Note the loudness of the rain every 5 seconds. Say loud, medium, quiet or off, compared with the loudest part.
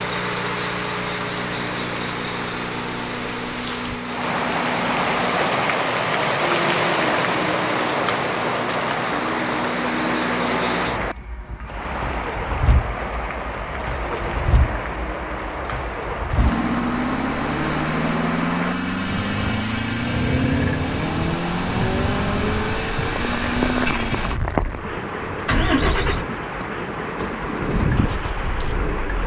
medium, loud, medium, medium, medium, medium.